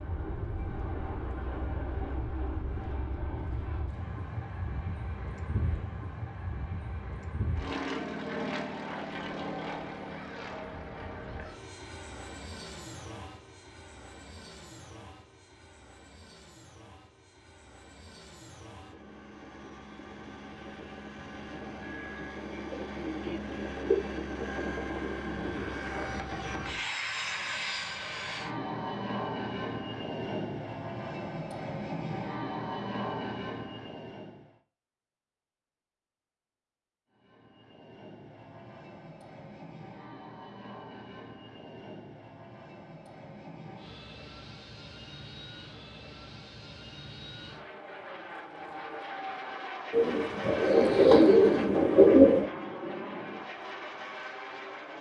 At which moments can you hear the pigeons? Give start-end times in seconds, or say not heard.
22.0-24.0, 49.9-52.5.